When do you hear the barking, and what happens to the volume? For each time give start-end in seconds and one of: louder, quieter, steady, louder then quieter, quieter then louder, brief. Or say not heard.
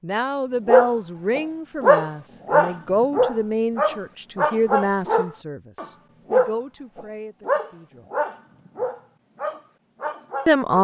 0.7-10.8 quieter.